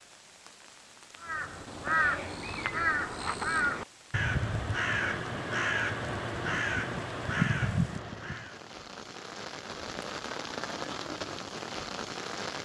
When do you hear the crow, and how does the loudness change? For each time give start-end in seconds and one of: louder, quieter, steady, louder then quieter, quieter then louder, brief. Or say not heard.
1.2-8.6 steady.